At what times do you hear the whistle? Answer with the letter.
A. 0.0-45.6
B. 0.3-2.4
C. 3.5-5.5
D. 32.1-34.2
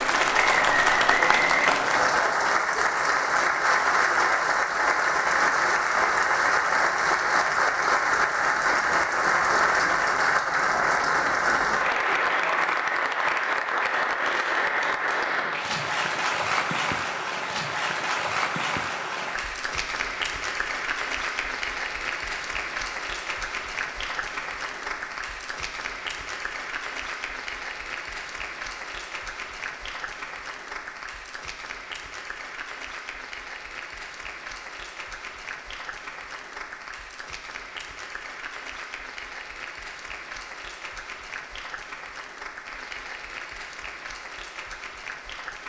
B.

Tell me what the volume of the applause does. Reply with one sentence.
The volume of the applause goes down.